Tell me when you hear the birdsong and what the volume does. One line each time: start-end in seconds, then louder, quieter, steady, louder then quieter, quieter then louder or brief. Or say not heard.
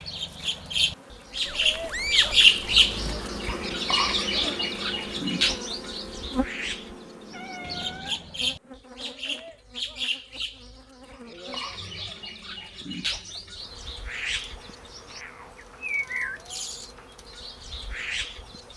0.0-18.7 quieter.